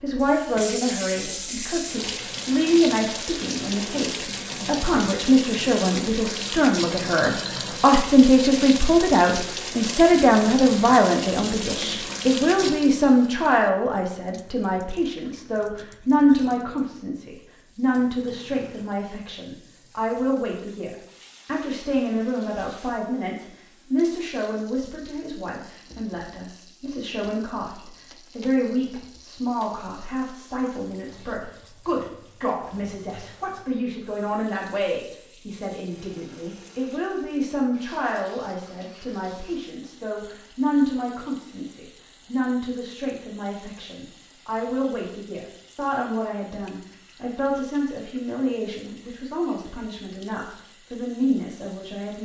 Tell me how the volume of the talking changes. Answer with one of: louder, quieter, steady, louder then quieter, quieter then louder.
quieter.